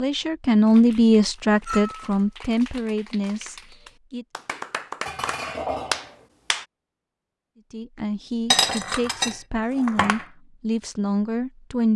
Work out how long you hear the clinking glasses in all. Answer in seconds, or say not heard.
3 s.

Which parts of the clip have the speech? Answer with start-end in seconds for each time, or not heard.
0.0-4.2, 7.7-11.9.